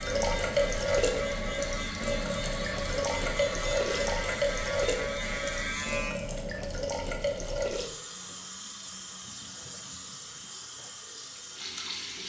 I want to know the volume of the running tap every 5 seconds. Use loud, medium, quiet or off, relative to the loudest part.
loud, medium, medium.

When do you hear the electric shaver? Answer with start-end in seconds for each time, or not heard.
0.0-6.2.